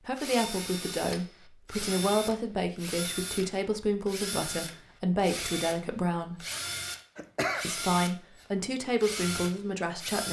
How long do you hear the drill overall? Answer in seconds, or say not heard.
10 s.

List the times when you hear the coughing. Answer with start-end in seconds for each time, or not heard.
7.2-7.8.